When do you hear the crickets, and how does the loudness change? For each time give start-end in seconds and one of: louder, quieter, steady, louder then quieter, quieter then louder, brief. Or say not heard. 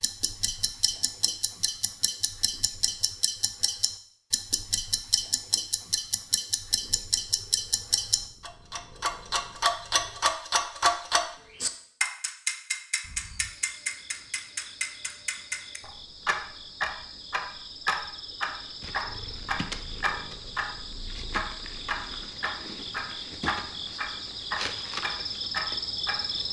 13.0-26.4 louder.